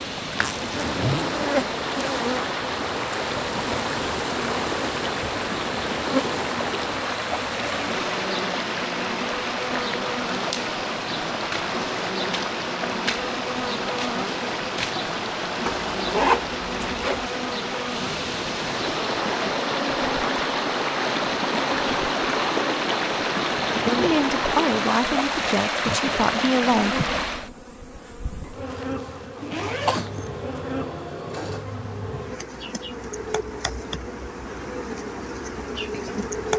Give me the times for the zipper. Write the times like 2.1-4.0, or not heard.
0.3-1.4, 15.7-17.2, 28.6-30.4.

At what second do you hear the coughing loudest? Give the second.
30 s.